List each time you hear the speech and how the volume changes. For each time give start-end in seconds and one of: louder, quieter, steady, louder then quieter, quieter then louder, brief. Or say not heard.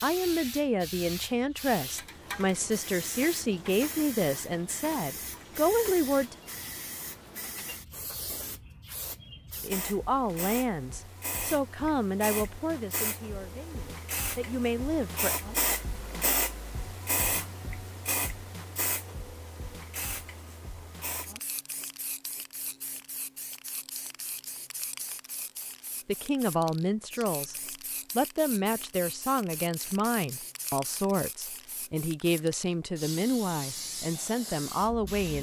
0.0-6.3 steady
9.6-15.4 quieter then louder
26.1-35.3 steady.